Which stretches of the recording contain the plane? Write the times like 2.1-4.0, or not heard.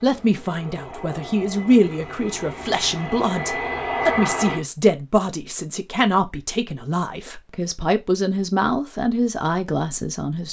0.0-4.7.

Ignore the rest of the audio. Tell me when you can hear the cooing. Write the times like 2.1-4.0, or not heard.
not heard.